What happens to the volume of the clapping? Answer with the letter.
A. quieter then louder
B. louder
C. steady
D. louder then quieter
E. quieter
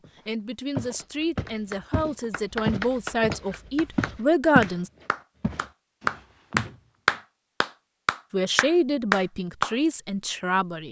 B.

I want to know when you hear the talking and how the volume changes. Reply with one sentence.
You can hear the talking from 0.2 to 4.9 s, getting louder; and briefly from 8.3 to 10.8 s.